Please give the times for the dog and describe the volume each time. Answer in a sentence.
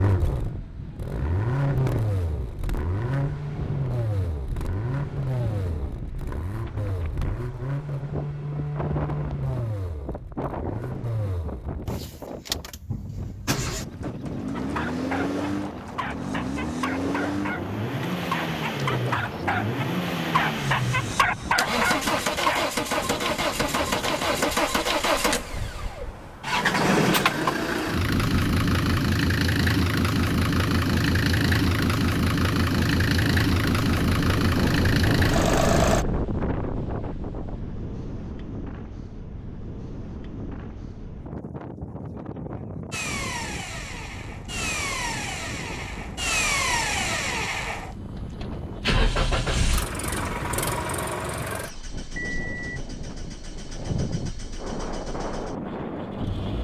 You can hear the dog from 14.6 to 22.6 s, getting louder.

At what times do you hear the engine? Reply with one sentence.
The engine can be heard from 0.0 to 36.0 s and from 42.9 to 56.5 s.